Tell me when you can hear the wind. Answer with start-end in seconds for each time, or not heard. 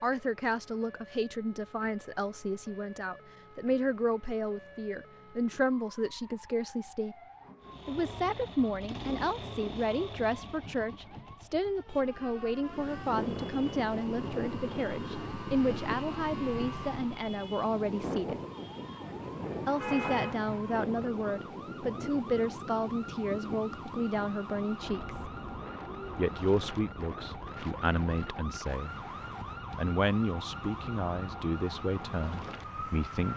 12.6-33.3.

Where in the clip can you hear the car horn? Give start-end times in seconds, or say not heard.
19.6-20.6.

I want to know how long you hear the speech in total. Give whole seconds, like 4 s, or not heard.
30 s.